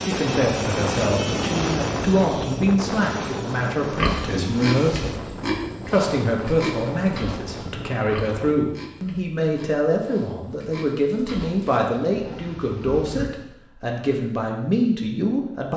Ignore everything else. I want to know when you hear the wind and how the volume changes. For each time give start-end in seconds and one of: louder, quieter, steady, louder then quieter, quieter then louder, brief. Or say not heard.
0.0-8.6 quieter.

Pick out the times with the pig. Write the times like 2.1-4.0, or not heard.
4.0-13.2.